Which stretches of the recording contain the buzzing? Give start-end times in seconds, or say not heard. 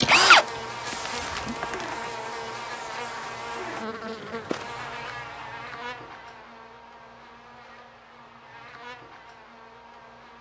0.0-10.3.